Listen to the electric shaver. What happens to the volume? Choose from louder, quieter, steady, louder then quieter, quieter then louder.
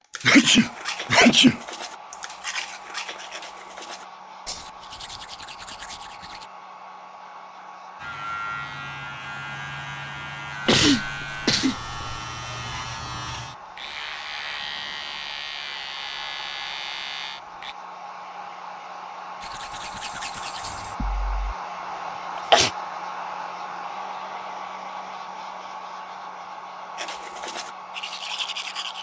steady.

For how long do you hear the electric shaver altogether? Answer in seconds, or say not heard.
10 s.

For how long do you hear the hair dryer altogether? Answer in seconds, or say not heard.
29 s.